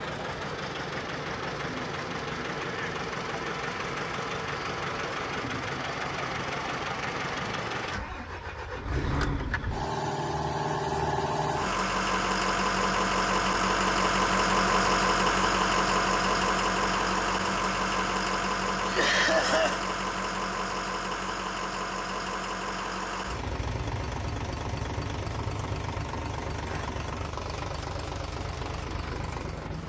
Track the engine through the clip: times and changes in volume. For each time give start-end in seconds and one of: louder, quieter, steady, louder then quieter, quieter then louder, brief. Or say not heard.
0.0-29.8 louder then quieter.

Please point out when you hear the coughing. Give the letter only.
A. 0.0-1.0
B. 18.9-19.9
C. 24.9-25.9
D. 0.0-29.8
B.